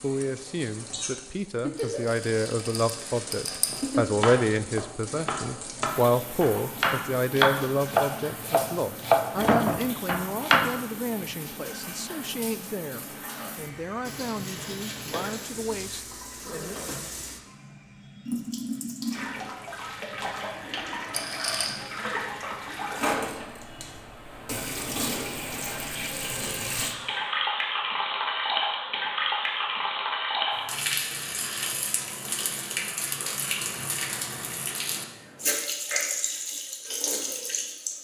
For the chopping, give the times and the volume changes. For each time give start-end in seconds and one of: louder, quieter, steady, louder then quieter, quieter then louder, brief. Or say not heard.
3.6-10.7 louder.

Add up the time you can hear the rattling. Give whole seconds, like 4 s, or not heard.
3 s.